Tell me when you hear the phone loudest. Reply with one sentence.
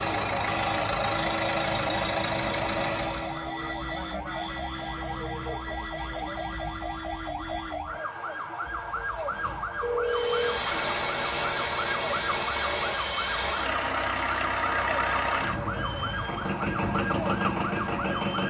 The loudest moment of the phone is at 10 seconds.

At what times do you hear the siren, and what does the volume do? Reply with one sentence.
The siren can be heard from 0.0 to 18.4 s, at a steady volume.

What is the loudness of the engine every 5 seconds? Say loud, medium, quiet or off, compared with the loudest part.
loud, off, loud, loud.